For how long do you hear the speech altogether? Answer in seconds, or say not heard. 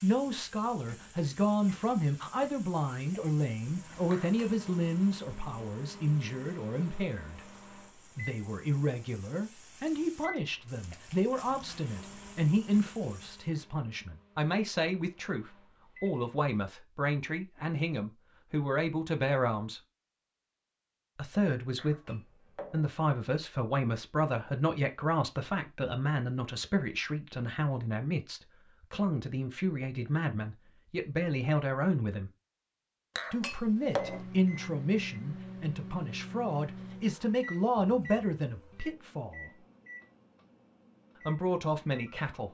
38 s.